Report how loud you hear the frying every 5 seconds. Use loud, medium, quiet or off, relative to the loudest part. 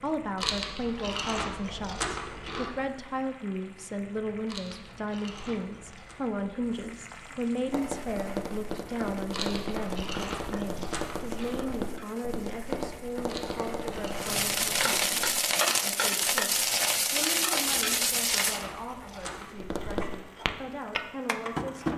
quiet, quiet, medium, loud, quiet.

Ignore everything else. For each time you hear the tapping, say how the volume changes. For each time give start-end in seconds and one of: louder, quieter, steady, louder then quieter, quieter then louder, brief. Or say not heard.
7.7-15.4 steady
19.6-21.9 brief.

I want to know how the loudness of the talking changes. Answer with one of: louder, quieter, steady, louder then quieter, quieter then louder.
quieter.